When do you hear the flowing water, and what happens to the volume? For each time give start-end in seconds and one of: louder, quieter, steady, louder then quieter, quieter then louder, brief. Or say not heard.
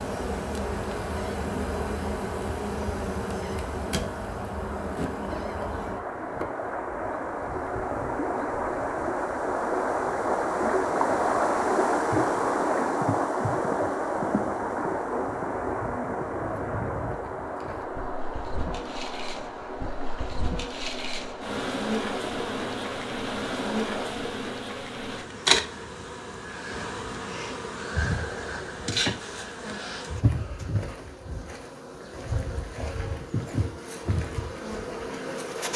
0.0-24.1 louder then quieter.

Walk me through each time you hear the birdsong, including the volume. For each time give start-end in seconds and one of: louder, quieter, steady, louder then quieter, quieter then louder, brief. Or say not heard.
not heard.